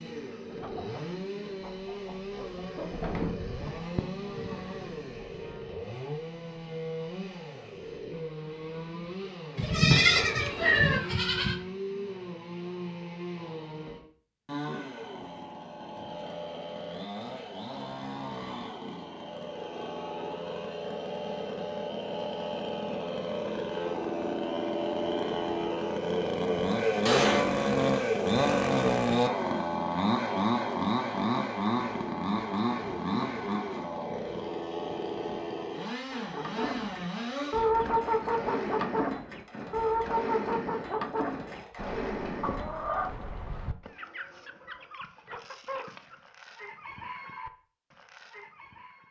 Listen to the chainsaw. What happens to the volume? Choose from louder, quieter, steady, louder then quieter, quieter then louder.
louder then quieter.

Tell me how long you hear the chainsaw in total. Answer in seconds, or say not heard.
43 s.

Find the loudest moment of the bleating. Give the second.
10 s.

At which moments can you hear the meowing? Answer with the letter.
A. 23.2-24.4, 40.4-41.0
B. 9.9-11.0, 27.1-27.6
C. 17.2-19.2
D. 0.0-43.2
B.